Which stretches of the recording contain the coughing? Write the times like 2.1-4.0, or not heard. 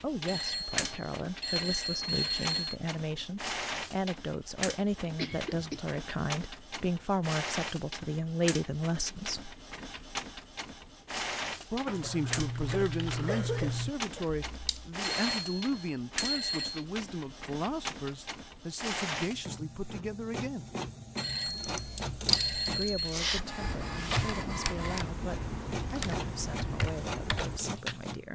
5.2-5.8, 11.8-14.2, 23.3-23.8.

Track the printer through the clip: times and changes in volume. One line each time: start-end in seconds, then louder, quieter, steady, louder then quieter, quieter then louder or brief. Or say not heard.
0.0-28.3 steady.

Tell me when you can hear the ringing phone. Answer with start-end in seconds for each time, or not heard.
0.2-2.8, 15.0-16.9, 21.1-23.1.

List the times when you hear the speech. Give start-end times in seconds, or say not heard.
0.0-9.6, 11.7-20.6, 22.7-28.3.